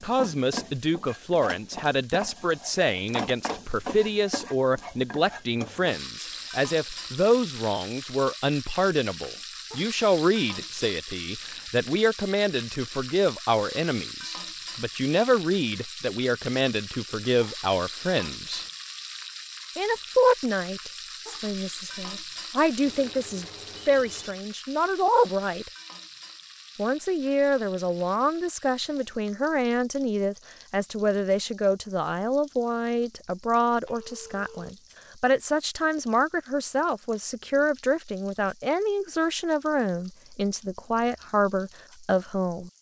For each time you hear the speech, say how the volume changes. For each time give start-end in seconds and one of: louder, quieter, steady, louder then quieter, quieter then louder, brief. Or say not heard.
0.0-18.6 steady
19.8-25.7 quieter then louder
26.8-42.7 steady.